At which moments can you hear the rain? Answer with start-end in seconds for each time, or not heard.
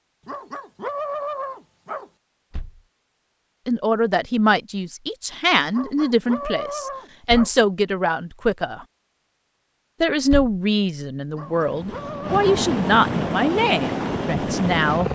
not heard.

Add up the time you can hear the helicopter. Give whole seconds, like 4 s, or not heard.
4 s.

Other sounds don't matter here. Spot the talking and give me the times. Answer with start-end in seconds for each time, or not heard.
3.6-8.8, 10.0-15.1.